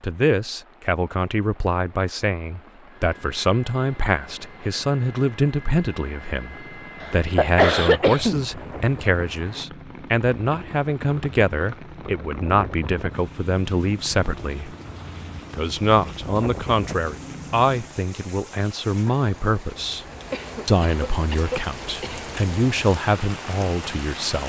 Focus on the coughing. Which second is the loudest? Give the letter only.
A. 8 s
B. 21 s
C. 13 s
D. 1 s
A.